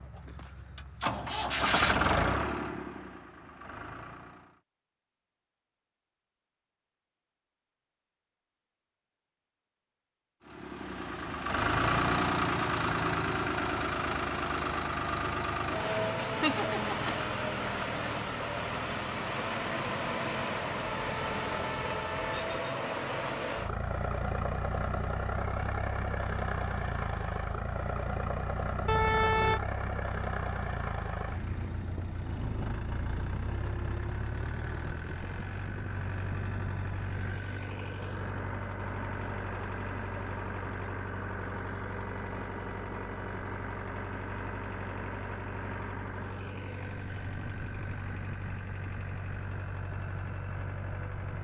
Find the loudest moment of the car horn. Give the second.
29 s.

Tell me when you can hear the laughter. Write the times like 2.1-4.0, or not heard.
16.2-17.1.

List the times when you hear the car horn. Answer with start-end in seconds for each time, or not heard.
20.9-22.6, 28.9-29.6.